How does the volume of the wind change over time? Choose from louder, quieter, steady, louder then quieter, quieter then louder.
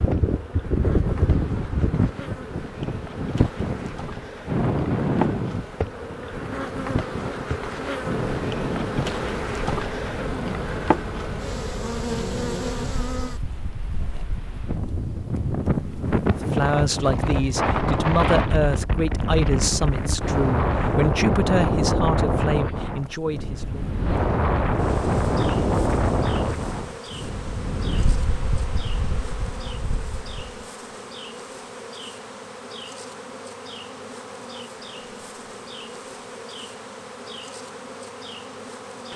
quieter then louder.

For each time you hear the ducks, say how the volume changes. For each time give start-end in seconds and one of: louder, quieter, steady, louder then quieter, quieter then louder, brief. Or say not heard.
not heard.